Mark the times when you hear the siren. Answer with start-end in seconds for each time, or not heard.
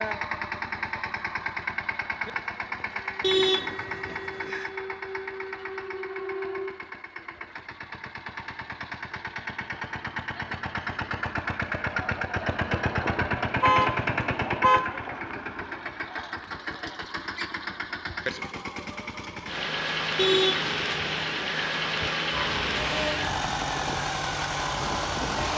2.9-6.7, 22.3-25.5.